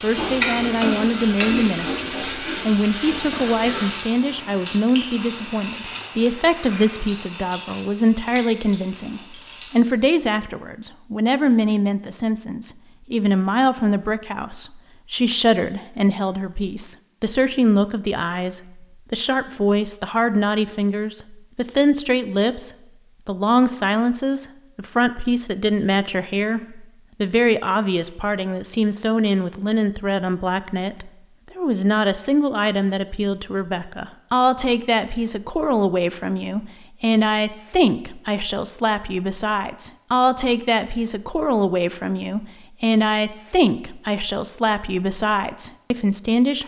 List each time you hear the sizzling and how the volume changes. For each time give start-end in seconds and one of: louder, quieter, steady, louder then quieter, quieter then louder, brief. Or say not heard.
0.0-9.8 quieter.